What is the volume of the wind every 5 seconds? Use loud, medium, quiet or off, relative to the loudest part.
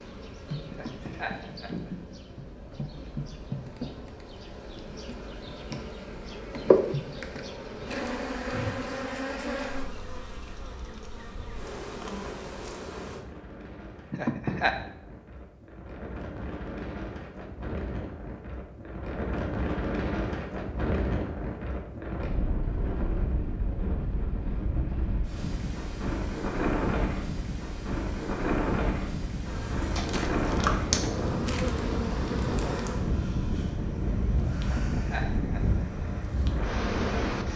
quiet, quiet, quiet, medium, loud, loud, loud, loud.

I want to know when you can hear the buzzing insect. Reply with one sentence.
The buzzing insect can be heard from 0.0 to 13.2 s and from 29.4 to 37.5 s.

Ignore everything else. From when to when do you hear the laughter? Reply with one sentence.
You can hear the laughter from 0.7 to 2.1 s, from 14.1 to 14.8 s and from 34.6 to 35.9 s.